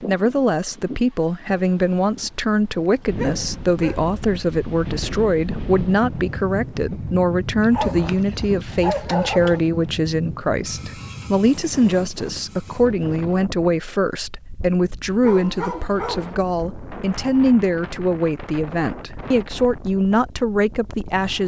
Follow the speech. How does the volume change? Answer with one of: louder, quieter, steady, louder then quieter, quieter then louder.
steady.